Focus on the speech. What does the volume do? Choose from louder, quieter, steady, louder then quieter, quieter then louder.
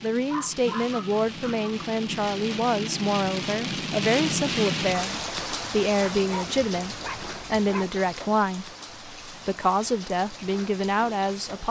steady.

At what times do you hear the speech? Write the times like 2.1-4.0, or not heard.
0.0-11.6.